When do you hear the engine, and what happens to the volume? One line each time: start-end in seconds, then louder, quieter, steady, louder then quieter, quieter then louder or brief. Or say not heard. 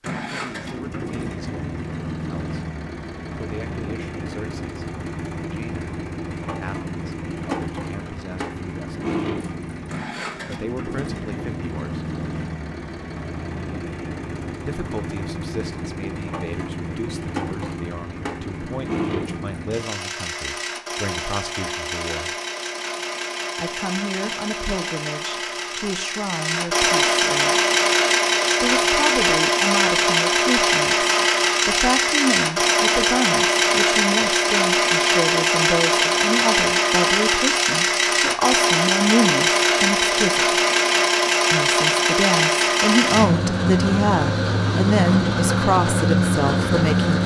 0.0-47.2 louder.